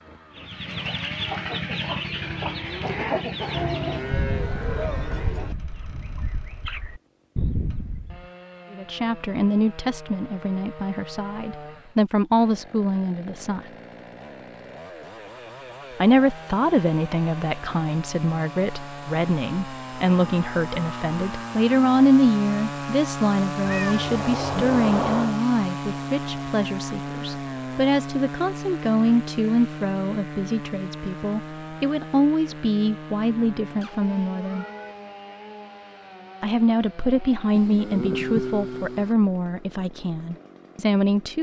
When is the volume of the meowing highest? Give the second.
25 s.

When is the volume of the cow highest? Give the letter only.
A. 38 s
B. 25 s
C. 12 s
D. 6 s
A.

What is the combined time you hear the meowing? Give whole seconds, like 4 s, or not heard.
4 s.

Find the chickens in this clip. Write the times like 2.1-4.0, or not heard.
0.3-8.3.